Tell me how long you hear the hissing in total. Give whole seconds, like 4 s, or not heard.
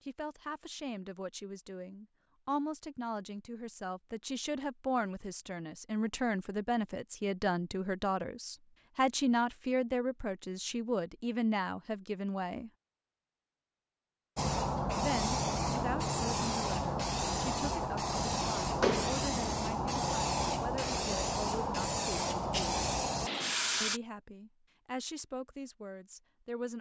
10 s.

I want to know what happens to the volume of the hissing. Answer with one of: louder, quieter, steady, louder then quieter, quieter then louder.
steady.